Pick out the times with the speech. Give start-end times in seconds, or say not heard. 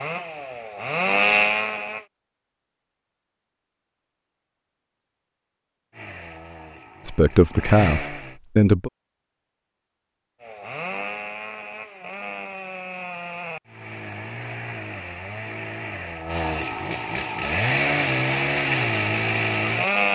7.0-8.9.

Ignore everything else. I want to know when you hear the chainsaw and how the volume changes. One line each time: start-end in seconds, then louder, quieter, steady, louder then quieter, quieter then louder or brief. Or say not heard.
0.0-2.0 brief
5.9-8.4 brief
10.4-20.1 louder.